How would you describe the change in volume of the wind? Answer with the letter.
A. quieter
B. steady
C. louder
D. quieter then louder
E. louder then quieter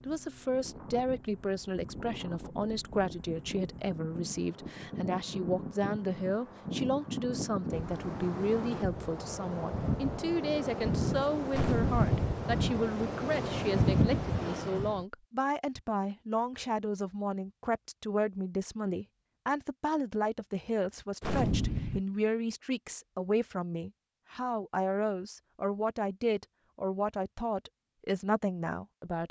C.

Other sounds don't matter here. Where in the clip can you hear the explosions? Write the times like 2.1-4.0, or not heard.
11.5-12.2, 21.2-22.0.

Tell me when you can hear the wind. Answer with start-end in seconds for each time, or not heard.
0.0-15.1.